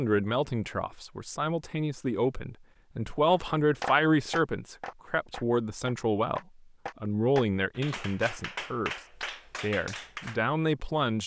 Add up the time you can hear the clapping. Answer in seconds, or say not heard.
7 s.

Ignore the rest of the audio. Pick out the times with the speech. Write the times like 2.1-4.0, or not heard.
0.0-6.4, 7.0-8.9, 9.6-11.2.